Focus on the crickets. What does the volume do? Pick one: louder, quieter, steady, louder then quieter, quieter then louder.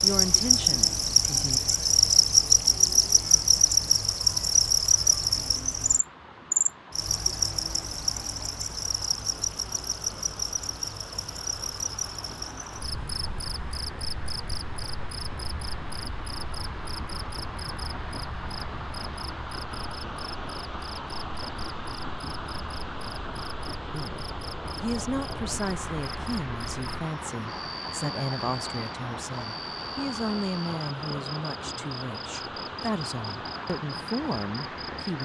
quieter.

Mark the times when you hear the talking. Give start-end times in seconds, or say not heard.
0.0-1.6, 23.9-35.2.